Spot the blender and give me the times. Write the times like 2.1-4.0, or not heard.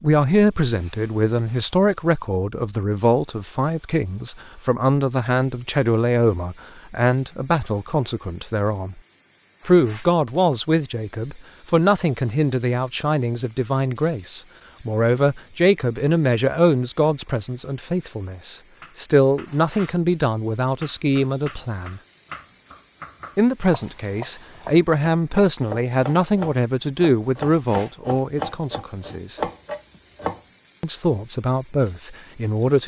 not heard.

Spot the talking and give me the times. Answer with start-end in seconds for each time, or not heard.
0.0-9.0, 9.7-22.0, 23.4-29.4, 30.8-32.8.